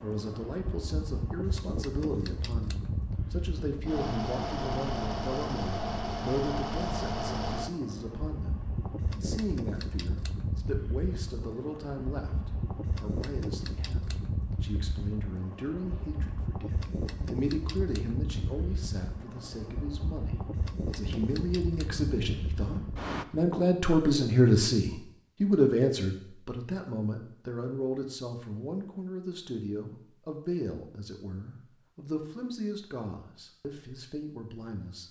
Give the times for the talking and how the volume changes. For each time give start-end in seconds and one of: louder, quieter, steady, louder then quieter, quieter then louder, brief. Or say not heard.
0.0-35.0 louder then quieter.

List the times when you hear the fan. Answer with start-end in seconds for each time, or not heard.
0.0-23.2.